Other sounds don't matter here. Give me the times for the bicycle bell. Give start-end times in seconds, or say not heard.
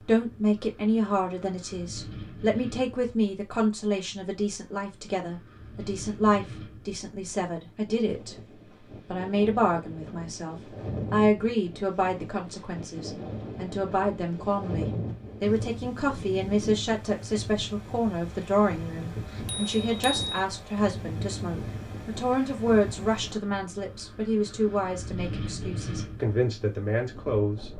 19.4-20.4.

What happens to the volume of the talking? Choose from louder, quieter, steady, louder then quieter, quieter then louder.
steady.